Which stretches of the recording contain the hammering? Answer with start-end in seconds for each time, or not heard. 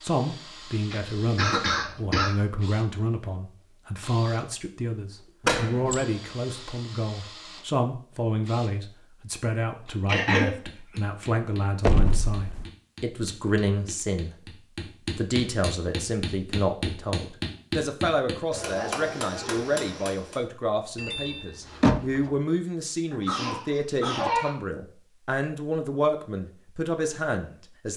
10.1-20.4.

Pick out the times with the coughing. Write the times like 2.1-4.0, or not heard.
0.9-2.4, 10.1-10.5, 23.1-24.6.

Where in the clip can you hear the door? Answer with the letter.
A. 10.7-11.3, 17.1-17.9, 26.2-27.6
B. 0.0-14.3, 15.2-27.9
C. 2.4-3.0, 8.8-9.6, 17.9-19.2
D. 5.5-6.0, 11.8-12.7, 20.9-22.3
D.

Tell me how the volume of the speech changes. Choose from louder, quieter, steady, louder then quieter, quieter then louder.
steady.